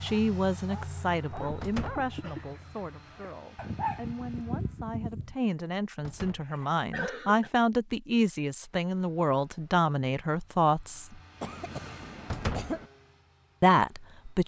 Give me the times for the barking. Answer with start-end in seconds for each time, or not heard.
0.0-5.3.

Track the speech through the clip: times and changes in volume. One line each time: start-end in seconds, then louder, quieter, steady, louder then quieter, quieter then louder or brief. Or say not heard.
0.0-11.2 quieter then louder
13.6-14.4 brief.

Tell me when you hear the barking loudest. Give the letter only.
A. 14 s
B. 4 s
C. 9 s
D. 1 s
B.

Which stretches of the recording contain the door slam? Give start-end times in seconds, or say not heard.
1.6-2.1, 6.0-6.5, 12.3-12.8.